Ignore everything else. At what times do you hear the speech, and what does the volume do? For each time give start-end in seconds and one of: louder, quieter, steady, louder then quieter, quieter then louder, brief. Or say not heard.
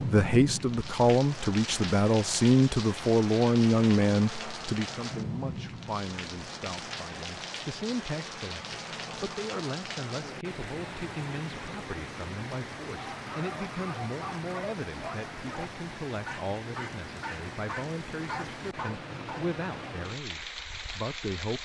0.1-21.6 quieter.